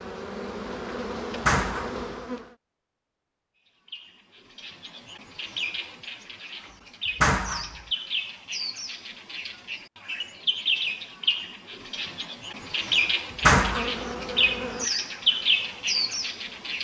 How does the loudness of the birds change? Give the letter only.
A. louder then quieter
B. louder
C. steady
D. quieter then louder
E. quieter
B.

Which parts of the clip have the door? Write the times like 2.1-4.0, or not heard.
1.4-2.0, 7.2-7.8, 13.4-13.8.